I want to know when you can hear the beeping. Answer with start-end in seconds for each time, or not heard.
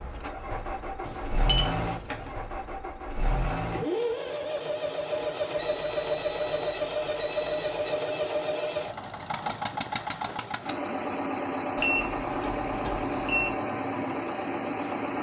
1.0-2.4, 5.5-7.8, 11.8-13.6.